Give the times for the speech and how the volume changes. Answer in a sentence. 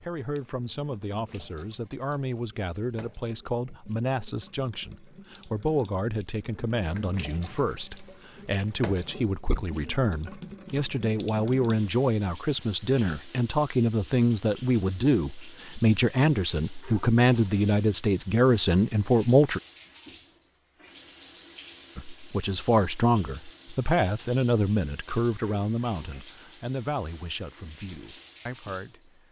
The speech can be heard from 0.0 to 19.6 s, getting louder; and from 21.9 to 29.2 s, getting quieter.